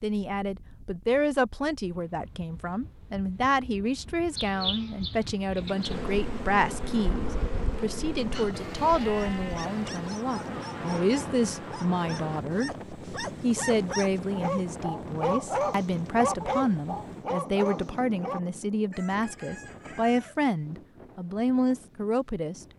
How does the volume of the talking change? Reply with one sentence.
The loudness of the talking stays about the same.